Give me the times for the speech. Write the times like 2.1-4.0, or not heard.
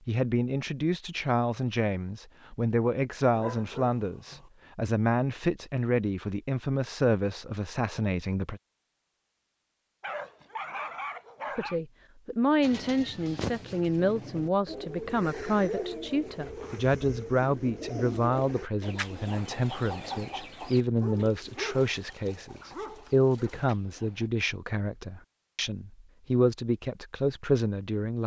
0.1-8.6, 11.6-28.2.